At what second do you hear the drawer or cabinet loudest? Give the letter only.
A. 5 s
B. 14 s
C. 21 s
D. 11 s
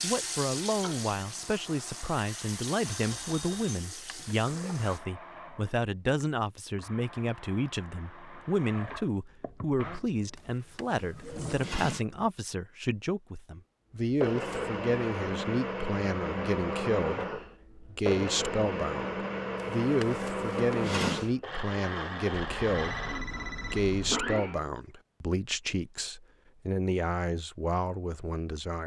C.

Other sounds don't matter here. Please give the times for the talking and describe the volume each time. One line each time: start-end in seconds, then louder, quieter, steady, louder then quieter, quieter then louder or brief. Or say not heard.
0.0-28.8 steady.